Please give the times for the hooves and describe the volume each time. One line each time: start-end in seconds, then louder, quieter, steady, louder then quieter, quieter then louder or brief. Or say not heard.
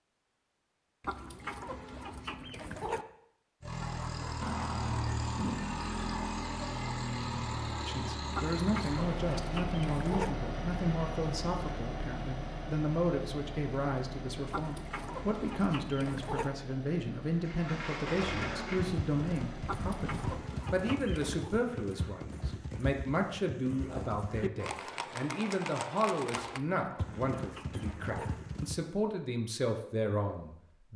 18.1-28.9 steady.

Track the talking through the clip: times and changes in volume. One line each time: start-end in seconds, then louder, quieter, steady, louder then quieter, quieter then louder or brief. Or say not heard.
7.8-30.9 steady.